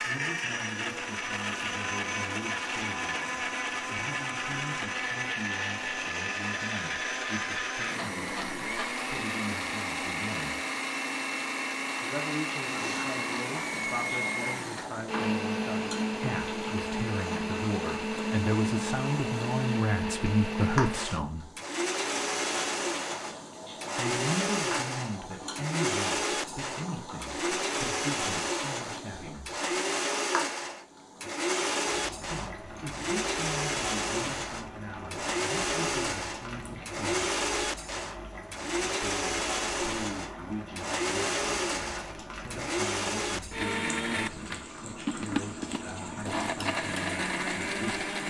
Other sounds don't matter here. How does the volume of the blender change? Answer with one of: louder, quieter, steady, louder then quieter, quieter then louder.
steady.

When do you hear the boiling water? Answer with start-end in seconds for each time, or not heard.
12.7-48.2.